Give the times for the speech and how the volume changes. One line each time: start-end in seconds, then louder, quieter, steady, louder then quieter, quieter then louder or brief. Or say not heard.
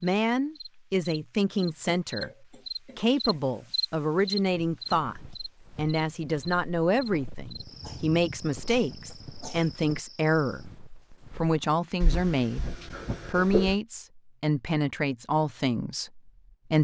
0.0-16.7 steady.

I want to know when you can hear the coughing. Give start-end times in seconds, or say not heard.
1.6-3.4, 7.7-9.7, 12.0-13.8.